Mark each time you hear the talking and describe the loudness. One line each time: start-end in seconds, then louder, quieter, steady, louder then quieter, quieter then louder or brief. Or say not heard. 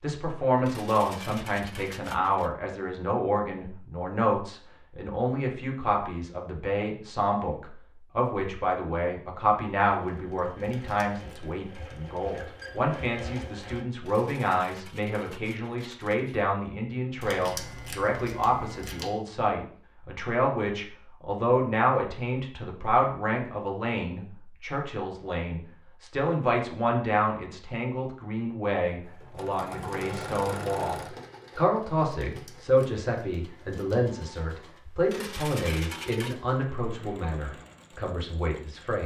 0.0-39.0 steady.